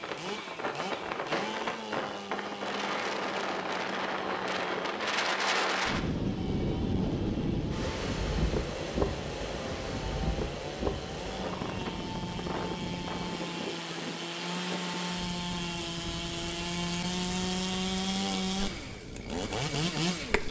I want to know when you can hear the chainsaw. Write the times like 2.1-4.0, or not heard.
0.0-20.4.